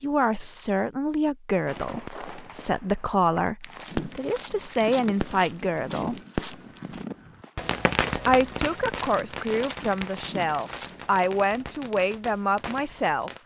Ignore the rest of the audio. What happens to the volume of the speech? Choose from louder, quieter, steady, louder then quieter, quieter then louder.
steady.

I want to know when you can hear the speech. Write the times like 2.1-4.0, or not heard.
0.0-6.2, 8.2-13.3.